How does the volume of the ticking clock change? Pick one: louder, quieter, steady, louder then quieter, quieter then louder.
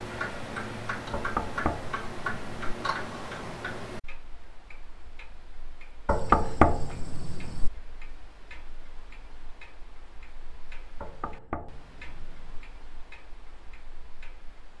quieter.